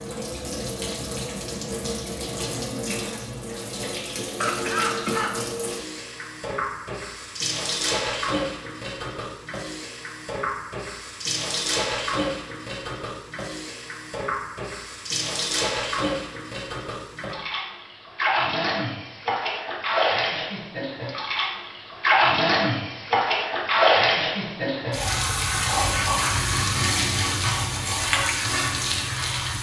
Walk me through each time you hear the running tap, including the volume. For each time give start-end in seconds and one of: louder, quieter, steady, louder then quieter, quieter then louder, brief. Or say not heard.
0.0-29.5 louder.